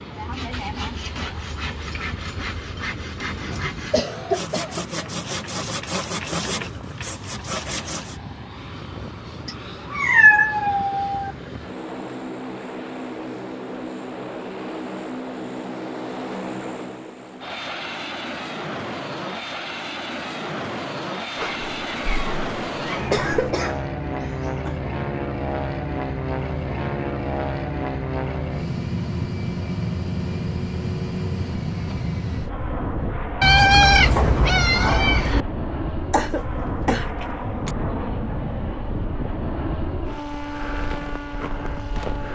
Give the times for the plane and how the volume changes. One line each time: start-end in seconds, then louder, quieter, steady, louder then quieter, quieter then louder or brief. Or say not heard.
0.0-42.3 louder.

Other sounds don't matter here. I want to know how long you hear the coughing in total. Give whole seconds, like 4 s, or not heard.
5 s.